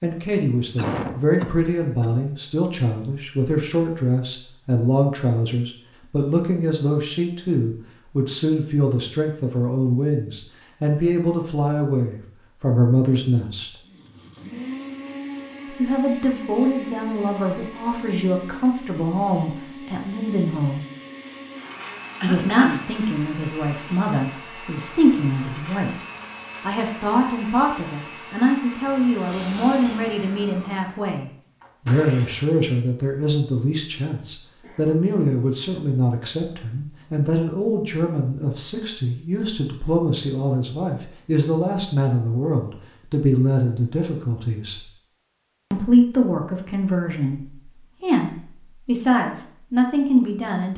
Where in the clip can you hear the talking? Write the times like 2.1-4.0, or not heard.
0.0-13.7, 15.7-20.8, 22.2-25.9, 26.6-44.8, 45.7-50.7.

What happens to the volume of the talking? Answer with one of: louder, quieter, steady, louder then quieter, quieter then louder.
steady.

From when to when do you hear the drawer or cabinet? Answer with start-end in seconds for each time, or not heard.
not heard.